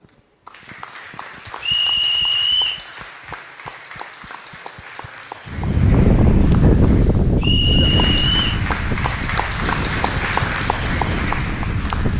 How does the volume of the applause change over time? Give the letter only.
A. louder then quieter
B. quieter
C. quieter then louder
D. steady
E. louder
E.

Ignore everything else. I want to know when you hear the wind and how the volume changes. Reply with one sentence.
You can hear the wind from 5.5 to 12.1 s, getting quieter.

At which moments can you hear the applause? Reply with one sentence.
You can hear the applause from 0.0 to 12.1 s.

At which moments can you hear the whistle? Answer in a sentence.
You can hear the whistle from 1.6 to 2.9 s and from 7.4 to 8.5 s.